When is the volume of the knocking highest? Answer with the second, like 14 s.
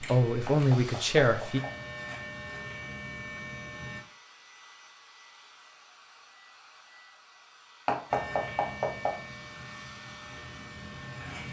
8 s.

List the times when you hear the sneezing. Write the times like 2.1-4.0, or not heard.
not heard.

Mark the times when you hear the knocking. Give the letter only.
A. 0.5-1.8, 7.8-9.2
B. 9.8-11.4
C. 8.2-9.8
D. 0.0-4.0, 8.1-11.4
A.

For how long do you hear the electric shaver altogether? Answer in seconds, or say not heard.
7 s.